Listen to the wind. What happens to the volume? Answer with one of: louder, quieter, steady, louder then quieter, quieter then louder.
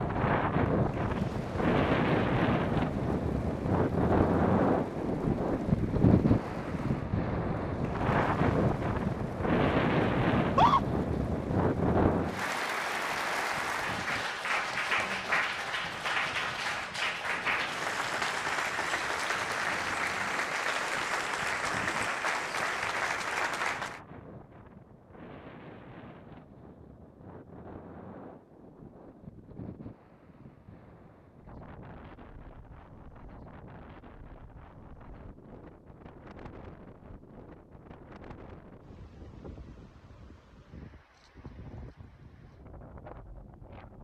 quieter.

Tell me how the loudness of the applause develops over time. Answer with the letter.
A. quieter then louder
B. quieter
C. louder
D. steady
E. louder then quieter
C.